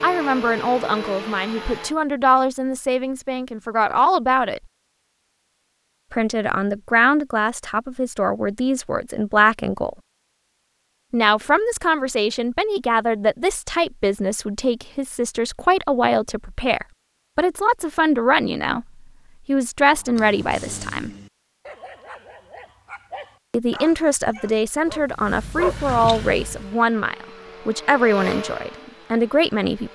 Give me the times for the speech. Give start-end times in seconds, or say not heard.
0.0-4.6, 6.1-9.9, 11.1-18.9, 19.4-21.1, 23.5-29.8.